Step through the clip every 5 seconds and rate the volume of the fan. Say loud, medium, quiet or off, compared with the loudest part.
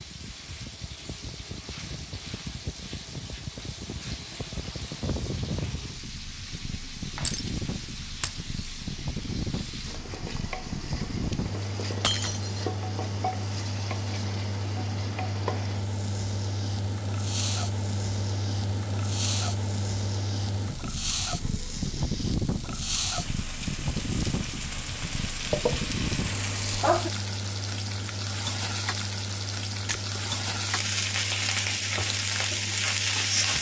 medium, loud, loud, loud, loud, loud, medium.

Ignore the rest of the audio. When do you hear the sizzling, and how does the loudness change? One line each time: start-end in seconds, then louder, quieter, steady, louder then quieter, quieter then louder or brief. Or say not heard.
0.0-33.5 louder.